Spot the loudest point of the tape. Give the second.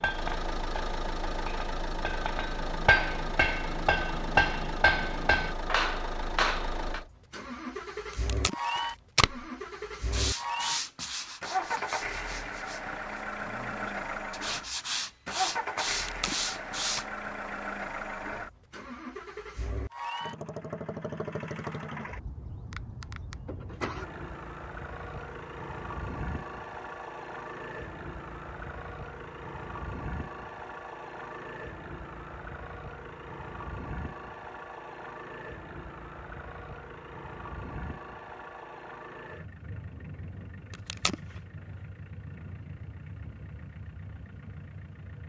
9 s.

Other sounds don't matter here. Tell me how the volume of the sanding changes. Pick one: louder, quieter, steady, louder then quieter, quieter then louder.
quieter then louder.